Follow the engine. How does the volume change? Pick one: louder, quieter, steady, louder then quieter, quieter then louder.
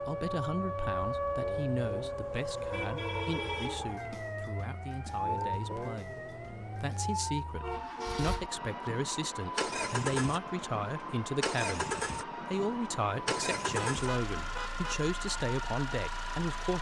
louder.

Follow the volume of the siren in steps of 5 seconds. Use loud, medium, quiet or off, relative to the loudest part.
loud, loud, medium, medium.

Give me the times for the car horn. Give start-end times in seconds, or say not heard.
2.4-4.0, 7.6-8.9, 13.2-15.1.